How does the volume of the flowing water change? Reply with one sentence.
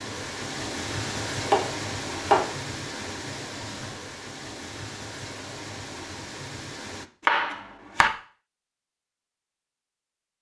The volume of the flowing water goes down.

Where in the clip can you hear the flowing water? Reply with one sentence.
You can hear the flowing water from 0.0 to 7.1 s.